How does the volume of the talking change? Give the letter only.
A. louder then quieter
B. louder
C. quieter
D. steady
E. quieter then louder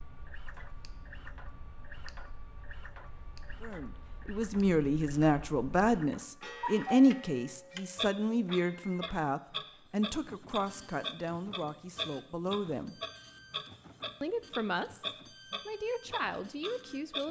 C.